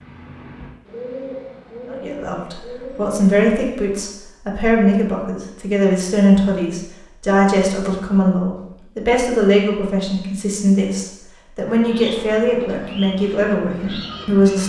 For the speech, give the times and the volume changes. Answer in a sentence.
You can hear the speech from 1.9 to 14.6 s, at a steady volume.